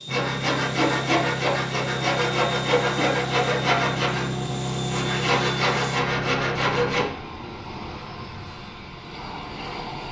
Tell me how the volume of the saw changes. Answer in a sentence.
The volume of the saw stays about the same.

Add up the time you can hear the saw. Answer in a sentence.
You can hear the saw for 7 seconds altogether.